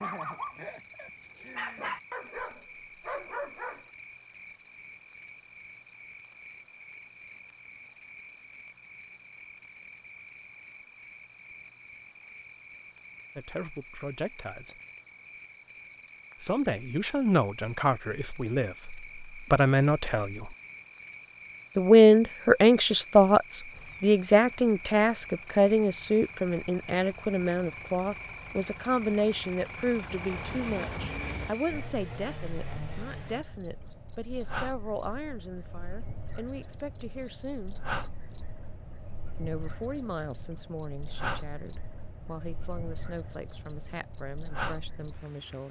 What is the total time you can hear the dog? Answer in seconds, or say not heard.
4 s.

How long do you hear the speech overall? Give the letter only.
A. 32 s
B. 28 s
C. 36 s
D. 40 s
B.